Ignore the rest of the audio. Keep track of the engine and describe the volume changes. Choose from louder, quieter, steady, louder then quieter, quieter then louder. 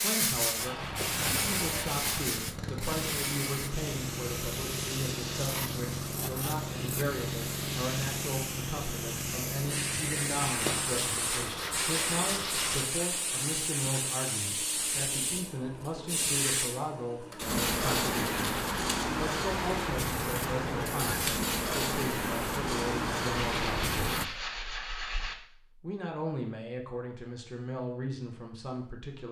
steady.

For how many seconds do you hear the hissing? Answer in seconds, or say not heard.
24 s.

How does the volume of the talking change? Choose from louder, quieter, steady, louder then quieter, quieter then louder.
steady.